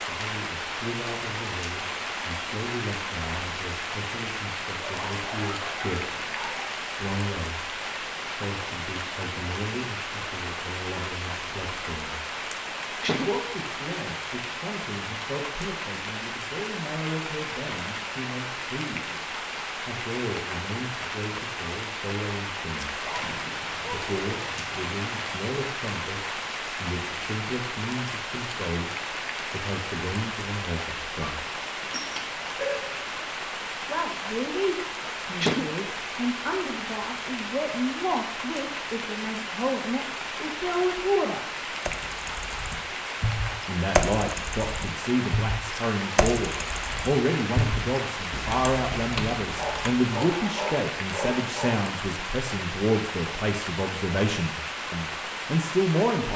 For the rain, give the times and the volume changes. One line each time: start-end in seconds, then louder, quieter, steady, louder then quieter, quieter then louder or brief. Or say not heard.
0.0-56.3 steady.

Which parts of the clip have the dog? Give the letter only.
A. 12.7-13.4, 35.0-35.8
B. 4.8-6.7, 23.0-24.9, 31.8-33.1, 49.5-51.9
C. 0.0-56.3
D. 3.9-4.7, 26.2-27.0
B.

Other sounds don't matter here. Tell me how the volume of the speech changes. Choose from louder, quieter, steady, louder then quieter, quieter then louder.
louder.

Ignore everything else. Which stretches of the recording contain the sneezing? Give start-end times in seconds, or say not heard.
12.7-13.4, 35.0-35.8.